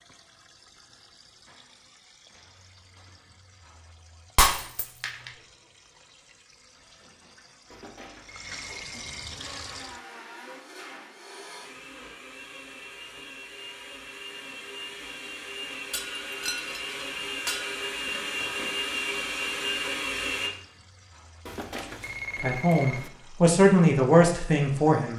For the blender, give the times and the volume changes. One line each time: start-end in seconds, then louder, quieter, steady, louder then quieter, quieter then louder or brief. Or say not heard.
9.3-20.5 louder.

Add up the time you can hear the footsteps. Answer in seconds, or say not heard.
not heard.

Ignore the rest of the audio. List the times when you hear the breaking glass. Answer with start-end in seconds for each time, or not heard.
4.3-5.3, 15.9-17.8.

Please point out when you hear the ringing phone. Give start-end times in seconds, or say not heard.
7.7-9.3, 21.4-23.1.